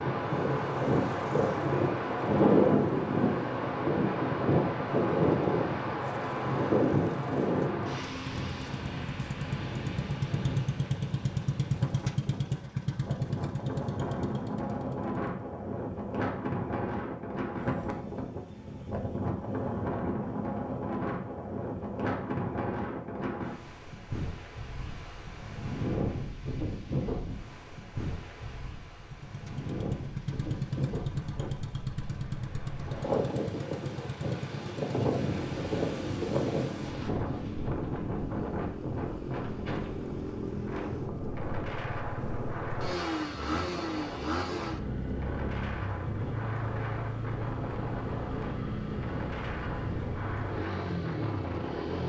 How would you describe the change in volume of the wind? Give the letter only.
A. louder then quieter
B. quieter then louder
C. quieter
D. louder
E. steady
C.